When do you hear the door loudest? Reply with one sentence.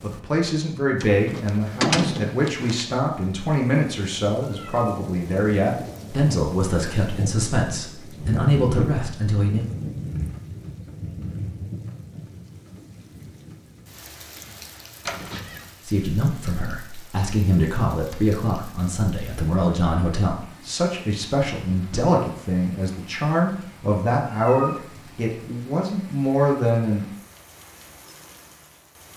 The volume of the door peaks at 2 seconds.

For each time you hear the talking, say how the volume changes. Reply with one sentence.
The talking can be heard from 0.0 to 9.7 s, at a steady volume; and from 15.8 to 27.1 s, at a steady volume.